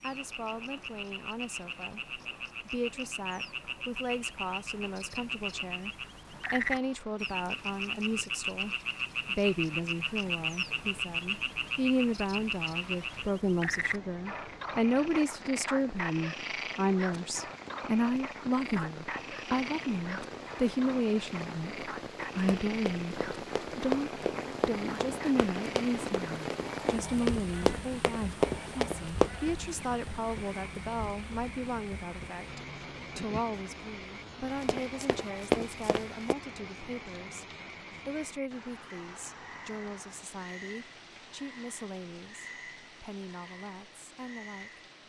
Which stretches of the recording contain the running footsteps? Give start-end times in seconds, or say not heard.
22.1-29.3, 34.6-36.4.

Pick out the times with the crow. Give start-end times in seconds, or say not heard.
not heard.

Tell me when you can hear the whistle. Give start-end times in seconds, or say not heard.
not heard.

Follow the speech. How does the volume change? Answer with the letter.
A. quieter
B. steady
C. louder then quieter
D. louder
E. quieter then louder
C.